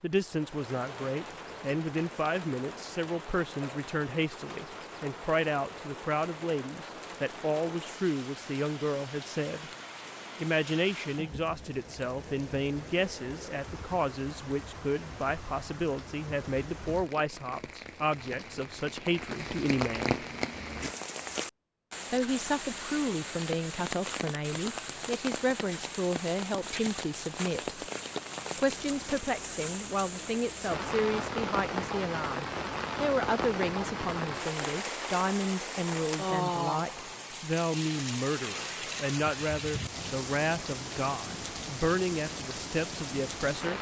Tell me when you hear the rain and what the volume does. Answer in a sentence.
You can hear the rain from 0.0 to 43.7 s, getting louder.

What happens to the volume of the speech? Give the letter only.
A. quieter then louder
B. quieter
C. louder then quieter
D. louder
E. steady
E.